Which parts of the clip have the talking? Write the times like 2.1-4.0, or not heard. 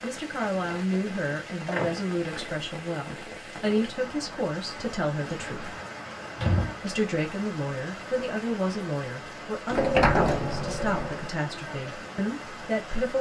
0.0-5.8, 6.8-13.1.